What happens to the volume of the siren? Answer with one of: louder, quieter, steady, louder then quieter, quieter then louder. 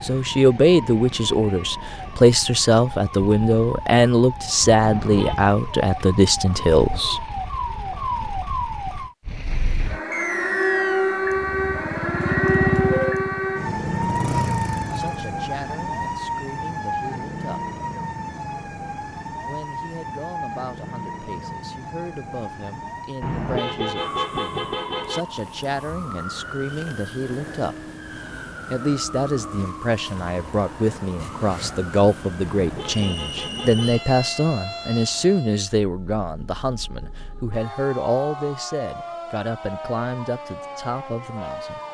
louder then quieter.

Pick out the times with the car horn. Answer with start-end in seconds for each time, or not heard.
4.8-5.5, 23.2-25.2, 32.4-34.0.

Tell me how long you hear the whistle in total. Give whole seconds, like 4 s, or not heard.
2 s.